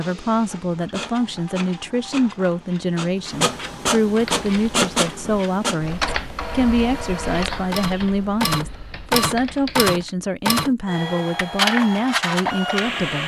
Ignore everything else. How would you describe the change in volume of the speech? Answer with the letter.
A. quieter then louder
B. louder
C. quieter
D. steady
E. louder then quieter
D.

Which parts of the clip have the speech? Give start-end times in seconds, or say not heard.
0.0-13.2.